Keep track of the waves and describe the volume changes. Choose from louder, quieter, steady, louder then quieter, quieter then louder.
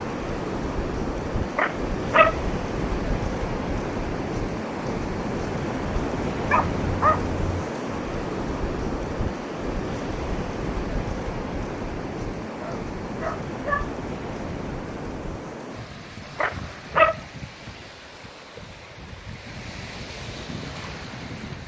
quieter.